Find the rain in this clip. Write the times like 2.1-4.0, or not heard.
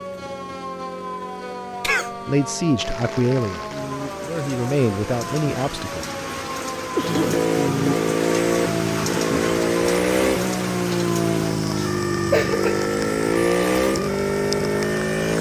2.8-15.3.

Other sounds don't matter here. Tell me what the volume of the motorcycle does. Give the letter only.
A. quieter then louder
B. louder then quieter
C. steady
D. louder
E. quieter
D.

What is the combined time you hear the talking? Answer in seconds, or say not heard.
4 s.